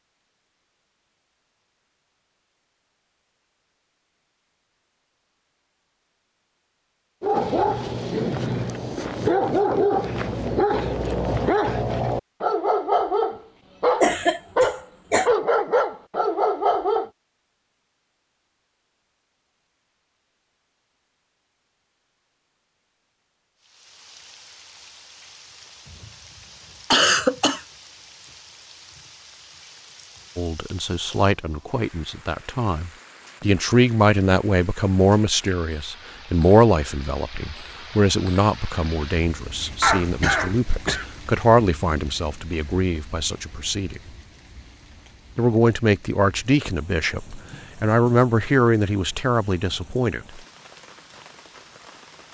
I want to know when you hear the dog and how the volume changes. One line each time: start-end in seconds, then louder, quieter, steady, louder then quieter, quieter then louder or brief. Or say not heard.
7.2-17.1 steady.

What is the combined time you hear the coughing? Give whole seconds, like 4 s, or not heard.
3 s.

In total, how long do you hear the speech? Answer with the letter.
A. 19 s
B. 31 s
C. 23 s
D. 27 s
A.